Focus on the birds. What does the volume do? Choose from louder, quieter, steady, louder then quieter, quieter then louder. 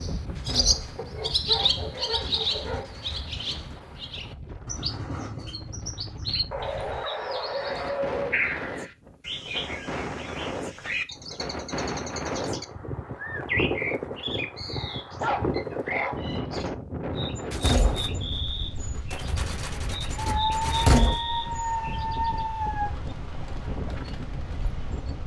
quieter.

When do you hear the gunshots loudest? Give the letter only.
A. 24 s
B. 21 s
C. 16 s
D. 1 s
B.